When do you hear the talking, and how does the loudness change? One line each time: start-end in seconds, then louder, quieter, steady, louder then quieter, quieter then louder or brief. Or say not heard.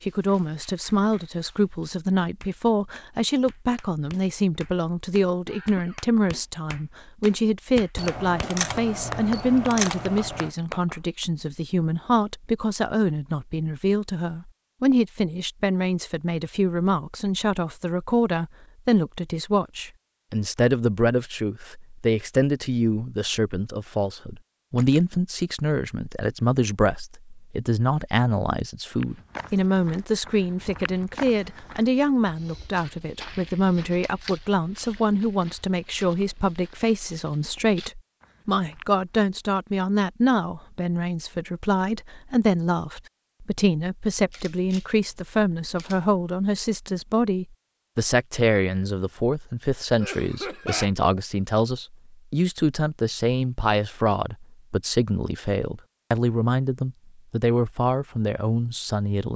0.0-59.3 steady.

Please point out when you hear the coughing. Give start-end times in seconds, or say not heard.
5.5-6.0, 50.0-50.9.